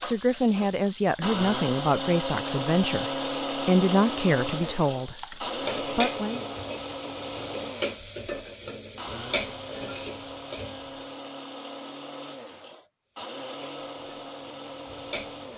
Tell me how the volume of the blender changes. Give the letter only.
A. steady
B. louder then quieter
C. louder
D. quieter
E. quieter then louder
D.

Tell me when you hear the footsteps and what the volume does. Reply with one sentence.
The footsteps can't be heard in this clip.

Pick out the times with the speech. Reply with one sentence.
The speech can be heard from 0.0 to 6.4 s.